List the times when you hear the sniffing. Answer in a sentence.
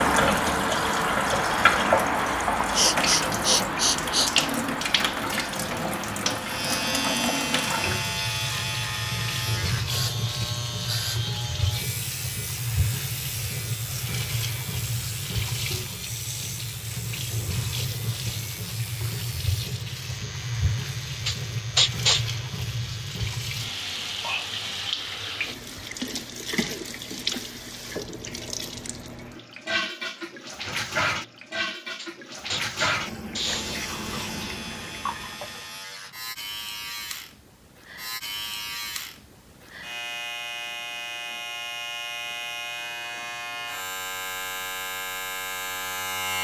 The sniffing can be heard from 2.6 to 4.3 s, from 21.2 to 22.2 s and from 31.9 to 33.8 s.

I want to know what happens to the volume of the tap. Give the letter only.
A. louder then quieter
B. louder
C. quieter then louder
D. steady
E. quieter
E.